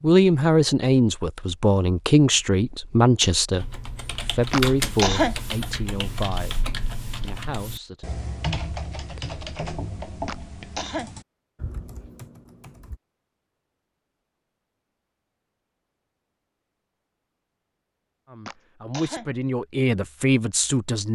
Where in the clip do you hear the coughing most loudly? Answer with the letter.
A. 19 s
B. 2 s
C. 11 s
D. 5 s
D.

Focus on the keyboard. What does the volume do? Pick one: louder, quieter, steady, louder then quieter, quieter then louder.
quieter.